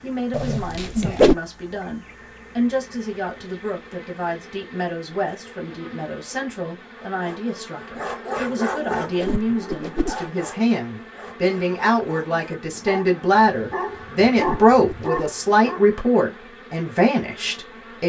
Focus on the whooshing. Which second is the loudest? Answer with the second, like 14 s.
1 s.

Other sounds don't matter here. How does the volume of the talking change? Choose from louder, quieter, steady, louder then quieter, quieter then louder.
louder.